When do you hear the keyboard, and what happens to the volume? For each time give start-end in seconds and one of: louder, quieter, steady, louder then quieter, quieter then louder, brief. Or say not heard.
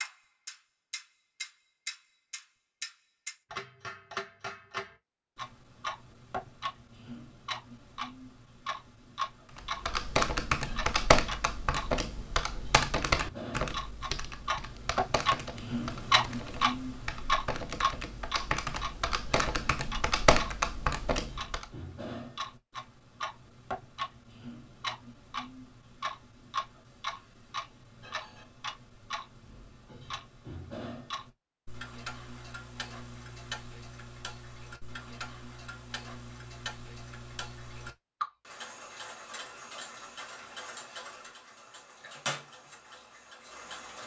9.6-21.6 quieter then louder.